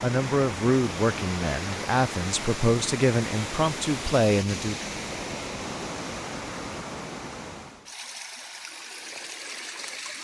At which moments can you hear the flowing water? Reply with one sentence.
You can hear the flowing water from 0.0 to 10.1 s.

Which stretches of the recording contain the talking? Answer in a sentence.
The talking can be heard from 0.0 to 4.8 s.